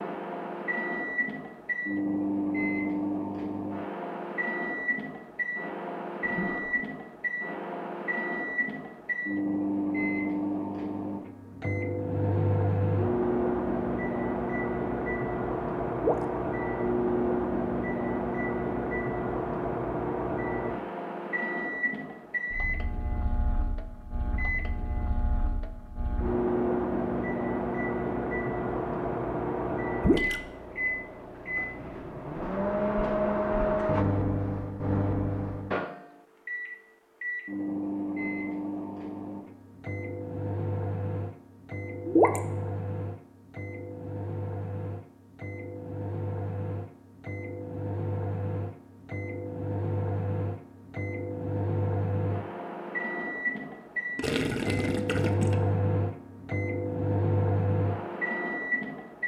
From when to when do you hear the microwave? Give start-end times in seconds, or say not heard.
0.0-59.2.